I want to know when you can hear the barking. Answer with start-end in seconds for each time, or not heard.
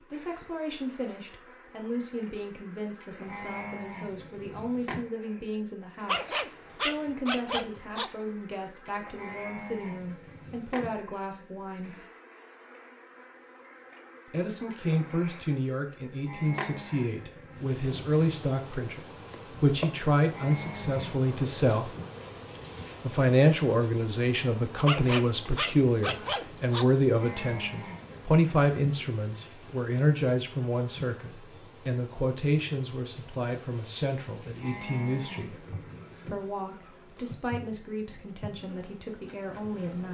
6.0-8.1, 24.9-26.9.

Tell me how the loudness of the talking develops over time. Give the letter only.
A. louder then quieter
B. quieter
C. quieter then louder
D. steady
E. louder
A.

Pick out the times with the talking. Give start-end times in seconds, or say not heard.
0.1-12.0, 14.2-21.9, 23.0-35.5, 36.2-40.0.